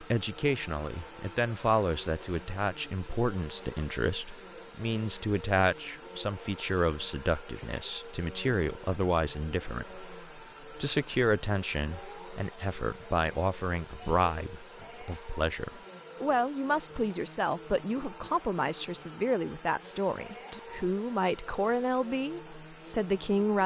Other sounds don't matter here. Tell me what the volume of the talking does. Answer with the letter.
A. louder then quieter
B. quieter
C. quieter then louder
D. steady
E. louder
D.